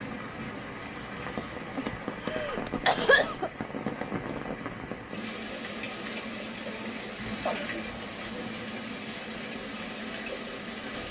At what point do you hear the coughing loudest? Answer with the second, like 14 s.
3 s.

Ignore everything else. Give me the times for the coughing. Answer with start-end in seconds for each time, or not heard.
1.6-3.5, 7.2-8.5.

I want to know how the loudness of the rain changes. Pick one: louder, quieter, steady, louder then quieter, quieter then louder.
steady.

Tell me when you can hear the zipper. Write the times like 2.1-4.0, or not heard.
not heard.